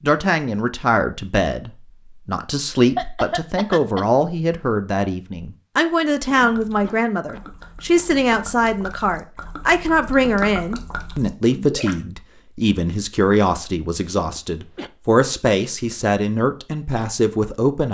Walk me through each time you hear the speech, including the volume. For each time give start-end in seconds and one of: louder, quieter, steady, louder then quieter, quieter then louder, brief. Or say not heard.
0.0-17.8 steady.